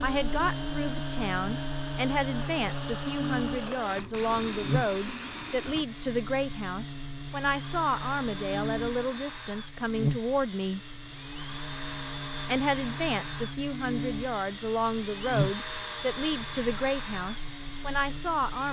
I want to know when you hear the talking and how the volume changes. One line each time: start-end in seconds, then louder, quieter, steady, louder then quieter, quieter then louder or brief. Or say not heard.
0.0-10.8 steady
12.4-18.6 steady.